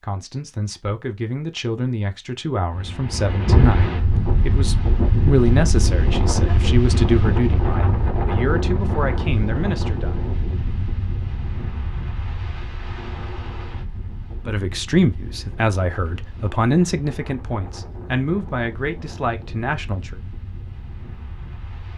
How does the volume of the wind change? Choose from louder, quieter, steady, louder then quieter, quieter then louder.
quieter.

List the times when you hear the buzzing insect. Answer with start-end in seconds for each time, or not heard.
not heard.